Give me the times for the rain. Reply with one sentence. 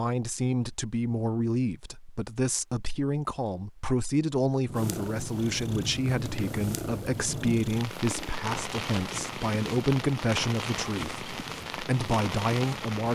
You can hear the rain from 4.7 to 13.1 s.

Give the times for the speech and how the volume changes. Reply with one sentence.
The speech can be heard from 0.0 to 13.1 s, at a steady volume.